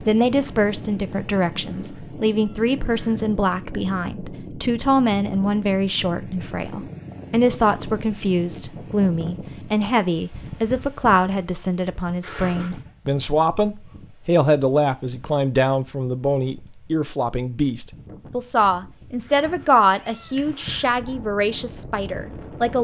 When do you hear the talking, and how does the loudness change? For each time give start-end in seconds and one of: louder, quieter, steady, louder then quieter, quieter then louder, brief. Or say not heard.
0.0-22.7 steady.